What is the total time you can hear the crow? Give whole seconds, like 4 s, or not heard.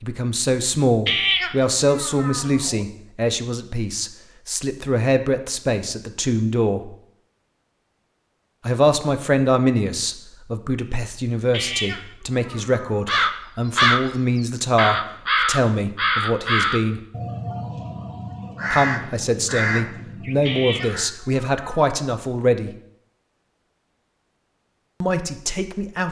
8 s.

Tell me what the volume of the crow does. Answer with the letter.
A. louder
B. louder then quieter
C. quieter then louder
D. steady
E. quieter
E.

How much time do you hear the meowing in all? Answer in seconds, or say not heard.
5 s.